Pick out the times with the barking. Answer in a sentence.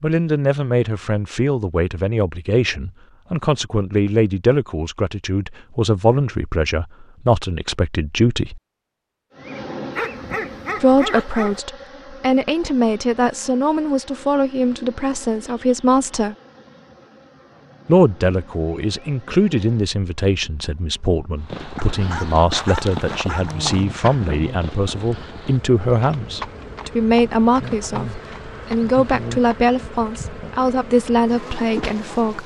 The barking can be heard from 9.9 to 11.6 s and from 21.8 to 23.6 s.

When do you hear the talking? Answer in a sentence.
The talking can be heard from 0.0 to 8.6 s, from 10.8 to 16.4 s and from 17.9 to 32.4 s.